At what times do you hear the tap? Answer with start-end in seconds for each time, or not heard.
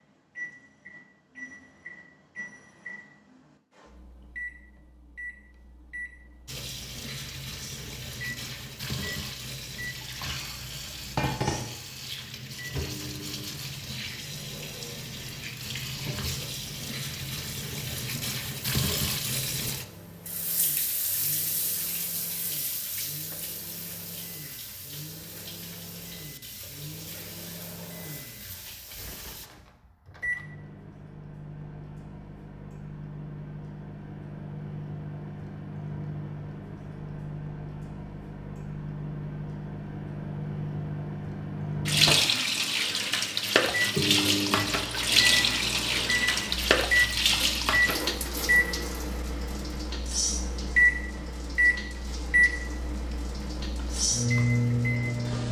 6.5-29.5, 41.9-55.4.